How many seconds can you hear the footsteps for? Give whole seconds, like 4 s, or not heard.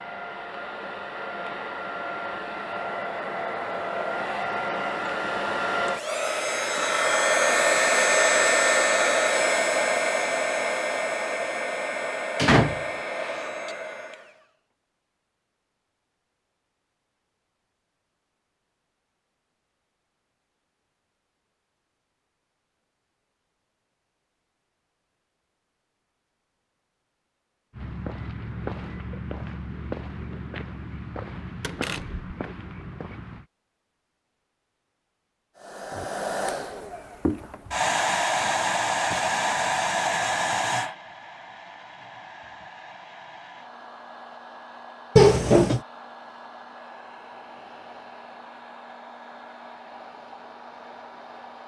6 s.